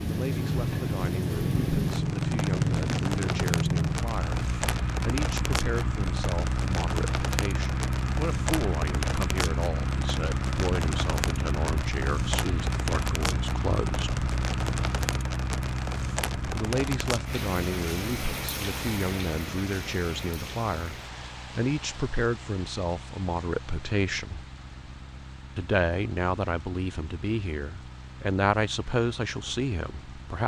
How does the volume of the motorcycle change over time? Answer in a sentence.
The loudness of the motorcycle goes down.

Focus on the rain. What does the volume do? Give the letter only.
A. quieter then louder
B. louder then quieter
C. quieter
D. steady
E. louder
C.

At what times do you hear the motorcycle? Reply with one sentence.
You can hear the motorcycle from 0.0 to 30.4 s.